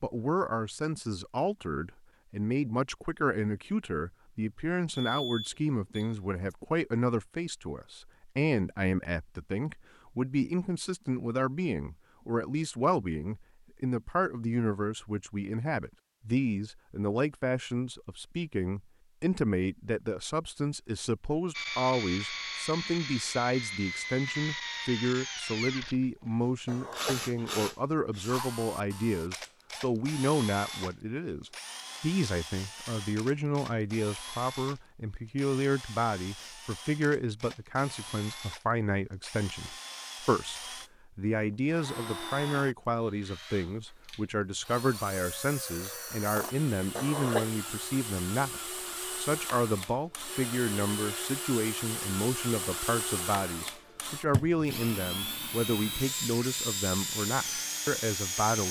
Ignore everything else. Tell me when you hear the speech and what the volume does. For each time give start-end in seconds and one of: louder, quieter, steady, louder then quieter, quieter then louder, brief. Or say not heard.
0.0-58.6 steady.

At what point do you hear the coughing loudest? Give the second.
47 s.